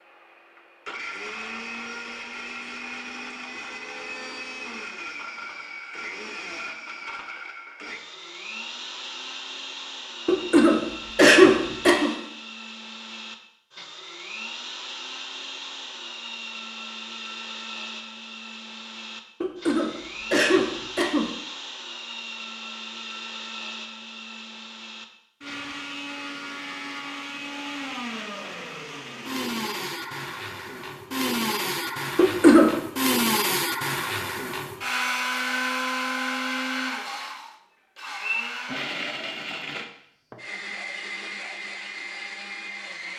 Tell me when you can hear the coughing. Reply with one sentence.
You can hear the coughing from 10.2 to 12.1 s, from 19.4 to 21.3 s and from 32.1 to 32.7 s.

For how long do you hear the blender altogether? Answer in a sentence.
The blender can be heard for 43 seconds in total.